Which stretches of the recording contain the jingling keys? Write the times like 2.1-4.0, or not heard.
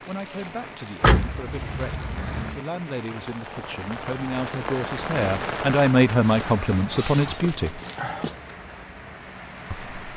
1.0-2.6, 7.0-8.4.